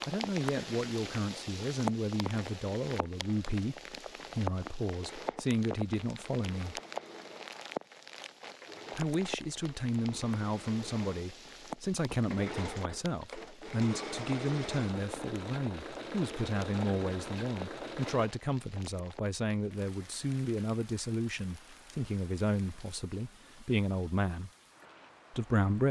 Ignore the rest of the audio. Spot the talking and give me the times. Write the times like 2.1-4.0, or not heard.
0.1-6.8, 8.9-24.5, 25.3-25.8.